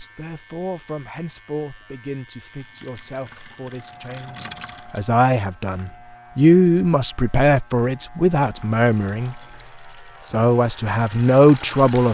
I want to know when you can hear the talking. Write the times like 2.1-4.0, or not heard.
0.0-9.4, 10.2-12.0.